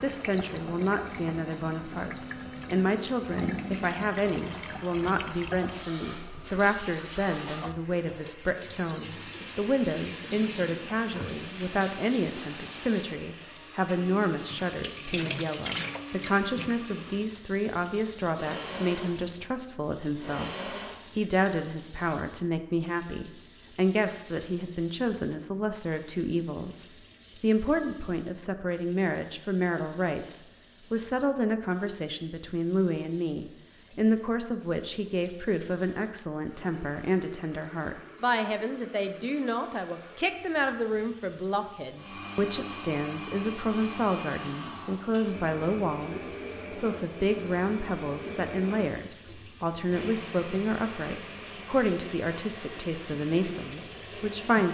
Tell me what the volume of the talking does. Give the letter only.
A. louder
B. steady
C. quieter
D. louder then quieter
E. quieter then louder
B.